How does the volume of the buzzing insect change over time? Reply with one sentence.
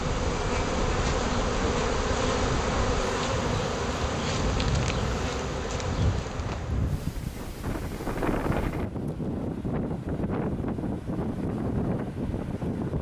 The loudness of the buzzing insect goes down.